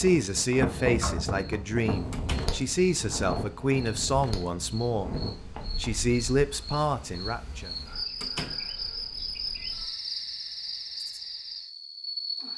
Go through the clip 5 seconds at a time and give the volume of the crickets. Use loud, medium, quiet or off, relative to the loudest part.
medium, loud, loud.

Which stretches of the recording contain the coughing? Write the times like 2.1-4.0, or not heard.
not heard.